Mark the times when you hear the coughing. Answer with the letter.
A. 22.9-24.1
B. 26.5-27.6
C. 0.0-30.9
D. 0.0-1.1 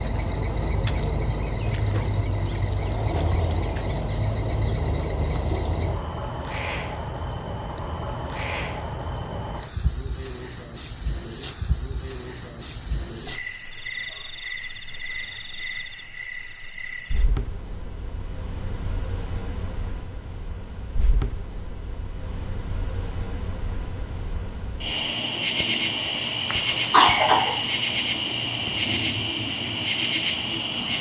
B.